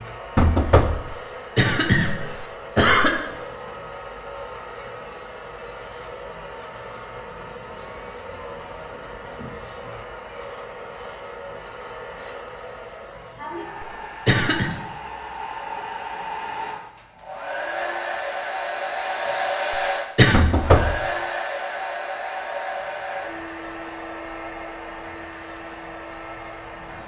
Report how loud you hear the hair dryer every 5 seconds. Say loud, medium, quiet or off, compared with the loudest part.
medium, medium, medium, loud, loud, medium.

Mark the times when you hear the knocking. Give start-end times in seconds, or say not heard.
0.3-1.1, 20.3-21.0.